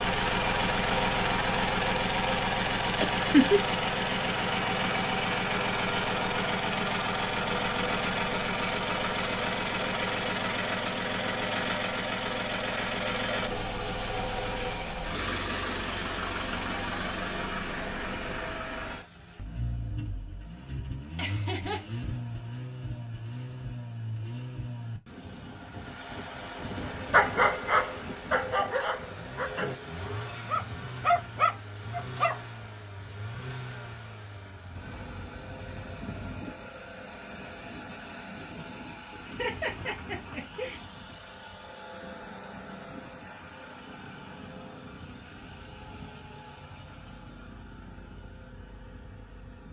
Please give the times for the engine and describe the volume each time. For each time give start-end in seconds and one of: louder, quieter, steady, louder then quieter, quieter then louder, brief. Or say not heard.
0.0-49.6 quieter.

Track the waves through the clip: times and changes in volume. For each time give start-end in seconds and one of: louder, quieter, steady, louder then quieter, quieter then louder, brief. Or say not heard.
not heard.